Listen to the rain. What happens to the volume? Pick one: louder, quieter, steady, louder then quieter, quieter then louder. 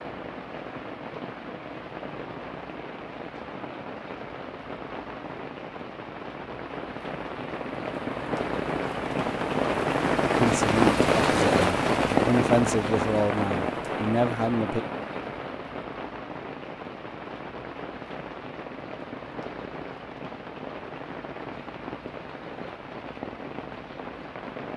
louder then quieter.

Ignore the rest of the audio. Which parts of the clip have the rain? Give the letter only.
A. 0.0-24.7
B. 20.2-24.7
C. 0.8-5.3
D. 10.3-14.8
A.